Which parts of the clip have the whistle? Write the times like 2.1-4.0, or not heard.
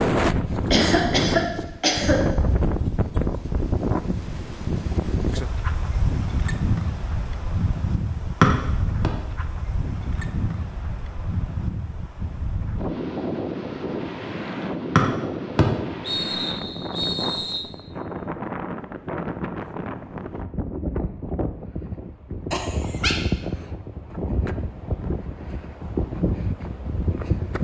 8.4-9.1, 14.9-17.6.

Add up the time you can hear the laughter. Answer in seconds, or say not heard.
2 s.